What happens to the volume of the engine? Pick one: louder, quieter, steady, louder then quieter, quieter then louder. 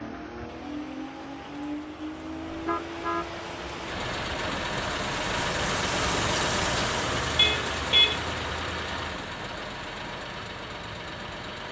louder then quieter.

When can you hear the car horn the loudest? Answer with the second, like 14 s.
8 s.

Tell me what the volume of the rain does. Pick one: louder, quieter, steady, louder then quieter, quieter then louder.
louder then quieter.